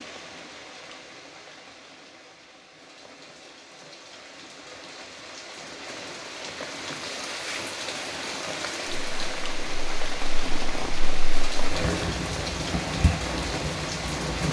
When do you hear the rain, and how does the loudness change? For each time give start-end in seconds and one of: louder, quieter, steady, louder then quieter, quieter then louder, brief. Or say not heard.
0.0-14.4 louder.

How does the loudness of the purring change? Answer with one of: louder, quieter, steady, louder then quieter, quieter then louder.
louder.